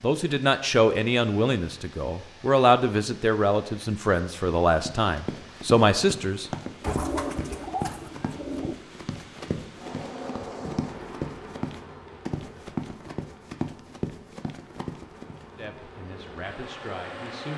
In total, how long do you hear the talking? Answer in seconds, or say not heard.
9 s.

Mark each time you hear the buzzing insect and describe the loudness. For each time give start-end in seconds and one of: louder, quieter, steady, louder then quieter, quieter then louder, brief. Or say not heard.
9.8-17.5 quieter then louder.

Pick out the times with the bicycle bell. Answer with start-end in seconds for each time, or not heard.
not heard.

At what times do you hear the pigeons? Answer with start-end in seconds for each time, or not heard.
6.8-8.8.